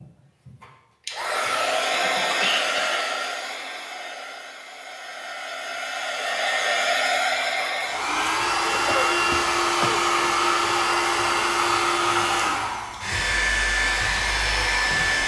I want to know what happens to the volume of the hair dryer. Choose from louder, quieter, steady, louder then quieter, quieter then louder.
quieter then louder.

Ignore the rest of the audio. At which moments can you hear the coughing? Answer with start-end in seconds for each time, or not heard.
2.0-3.0, 8.7-10.1.